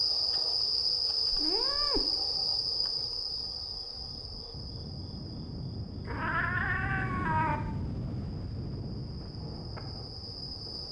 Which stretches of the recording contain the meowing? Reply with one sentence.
You can hear the meowing from 1.3 to 2.0 s and from 6.0 to 7.6 s.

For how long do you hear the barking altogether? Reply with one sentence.
The barking can't be heard in this clip.